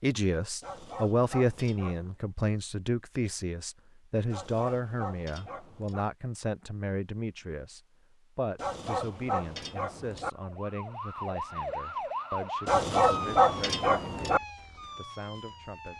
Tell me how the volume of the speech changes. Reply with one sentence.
The loudness of the speech goes down.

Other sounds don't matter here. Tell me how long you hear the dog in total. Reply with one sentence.
The dog can be heard for 7 seconds in total.